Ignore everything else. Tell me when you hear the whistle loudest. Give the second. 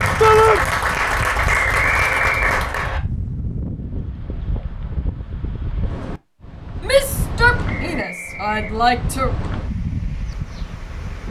2 s.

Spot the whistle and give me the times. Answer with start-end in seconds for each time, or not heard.
1.7-3.0, 7.7-8.8.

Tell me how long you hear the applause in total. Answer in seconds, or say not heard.
3 s.